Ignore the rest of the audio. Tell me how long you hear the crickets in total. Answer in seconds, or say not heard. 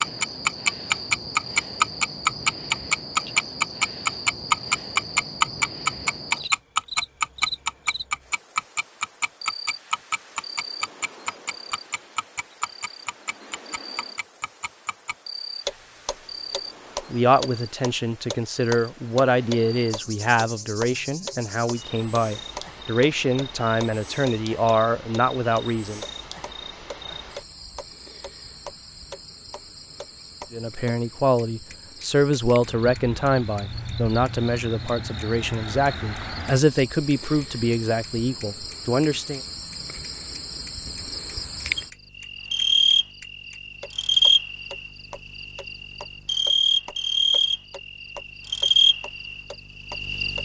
50 s.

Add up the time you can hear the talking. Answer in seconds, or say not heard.
18 s.